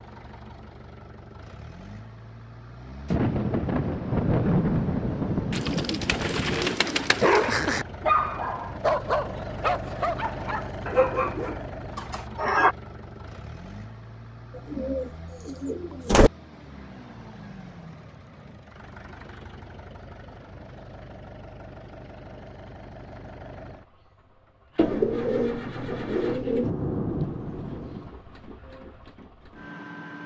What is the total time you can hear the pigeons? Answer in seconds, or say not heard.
6 s.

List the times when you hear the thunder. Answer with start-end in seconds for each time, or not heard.
3.0-6.7, 26.6-28.1.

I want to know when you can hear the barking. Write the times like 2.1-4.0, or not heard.
7.2-12.8.